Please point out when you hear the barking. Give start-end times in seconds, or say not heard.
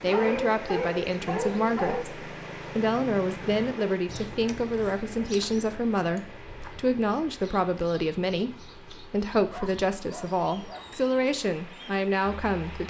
0.1-2.0, 9.5-10.9.